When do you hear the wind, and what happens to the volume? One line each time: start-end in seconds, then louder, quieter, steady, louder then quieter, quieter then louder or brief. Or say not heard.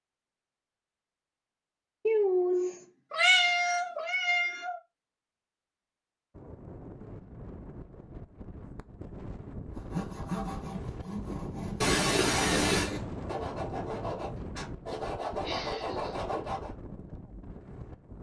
6.3-18.1 louder then quieter.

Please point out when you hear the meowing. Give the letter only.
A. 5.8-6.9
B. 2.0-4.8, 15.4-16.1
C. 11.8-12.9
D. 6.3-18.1
B.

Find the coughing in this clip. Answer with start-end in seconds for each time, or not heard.
11.8-12.9.